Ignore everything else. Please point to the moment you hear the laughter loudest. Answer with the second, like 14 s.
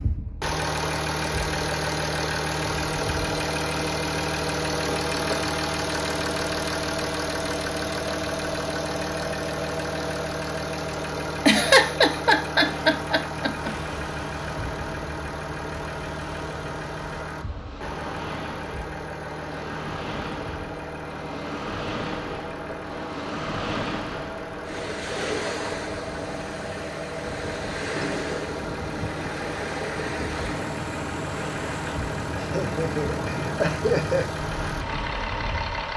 12 s.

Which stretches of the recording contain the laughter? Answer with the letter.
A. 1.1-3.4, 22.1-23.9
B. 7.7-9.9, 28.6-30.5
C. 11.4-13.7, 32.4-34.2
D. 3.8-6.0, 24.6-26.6
C.